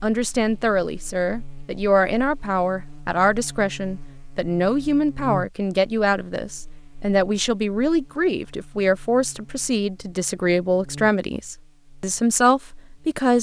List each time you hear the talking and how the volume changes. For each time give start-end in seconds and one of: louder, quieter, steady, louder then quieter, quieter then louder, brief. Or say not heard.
0.0-13.3 steady.